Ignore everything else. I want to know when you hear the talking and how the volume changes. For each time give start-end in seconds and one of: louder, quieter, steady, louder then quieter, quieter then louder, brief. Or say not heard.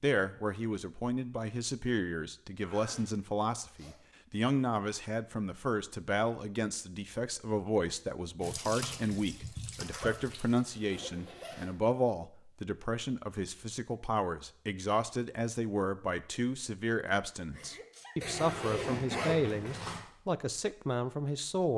0.0-21.7 steady.